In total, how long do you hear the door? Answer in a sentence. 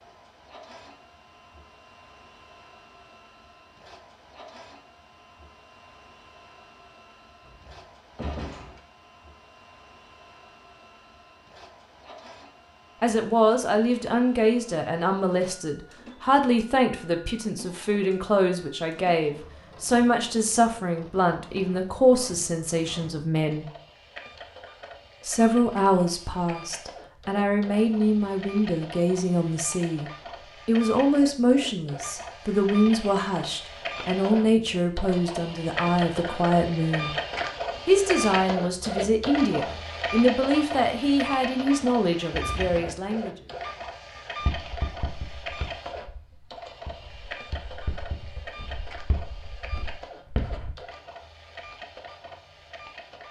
You can hear the door for 2 seconds altogether.